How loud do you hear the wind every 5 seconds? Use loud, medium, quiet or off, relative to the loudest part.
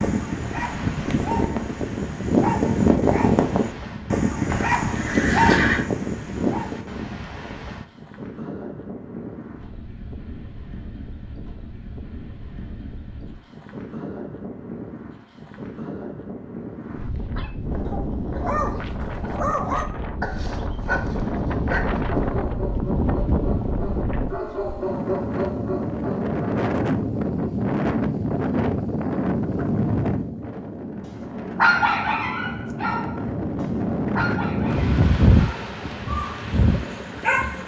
medium, quiet, quiet, medium, loud, loud, loud, loud.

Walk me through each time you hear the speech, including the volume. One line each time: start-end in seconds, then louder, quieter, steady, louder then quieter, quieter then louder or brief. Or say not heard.
not heard.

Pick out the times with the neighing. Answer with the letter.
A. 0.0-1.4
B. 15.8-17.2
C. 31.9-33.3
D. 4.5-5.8
D.